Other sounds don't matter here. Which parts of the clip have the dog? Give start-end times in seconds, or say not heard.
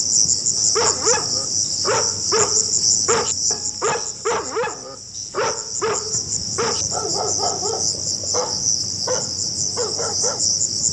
0.6-10.4.